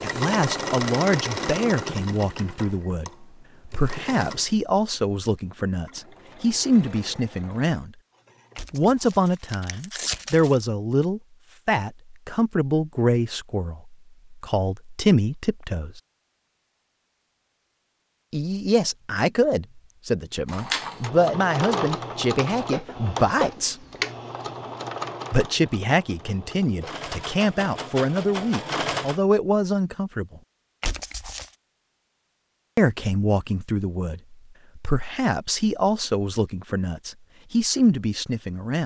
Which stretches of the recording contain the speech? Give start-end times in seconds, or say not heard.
0.0-7.9, 8.7-16.0, 18.3-23.8, 25.3-30.4, 32.8-38.8.